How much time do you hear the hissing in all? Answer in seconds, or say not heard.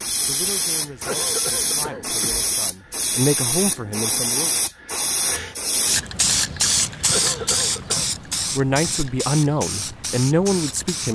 11 s.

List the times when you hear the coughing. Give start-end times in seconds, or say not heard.
1.1-2.4, 7.1-8.1.